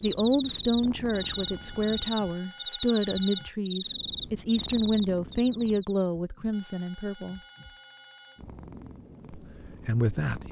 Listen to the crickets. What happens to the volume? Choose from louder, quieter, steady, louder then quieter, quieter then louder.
louder then quieter.